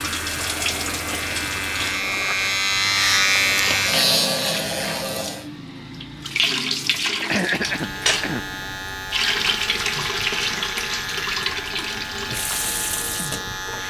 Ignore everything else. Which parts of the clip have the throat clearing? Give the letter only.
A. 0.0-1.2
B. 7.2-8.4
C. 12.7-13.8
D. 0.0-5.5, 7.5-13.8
B.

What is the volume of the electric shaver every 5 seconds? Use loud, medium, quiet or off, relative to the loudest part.
loud, medium, medium.